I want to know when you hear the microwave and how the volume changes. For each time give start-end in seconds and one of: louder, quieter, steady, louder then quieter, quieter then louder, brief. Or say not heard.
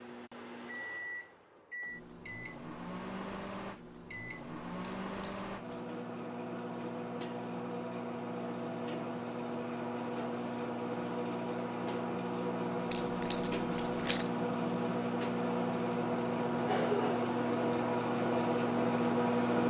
0.0-19.6 louder.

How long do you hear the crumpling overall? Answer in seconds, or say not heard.
3 s.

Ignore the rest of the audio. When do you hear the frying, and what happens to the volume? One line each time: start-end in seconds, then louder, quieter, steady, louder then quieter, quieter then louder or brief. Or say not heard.
not heard.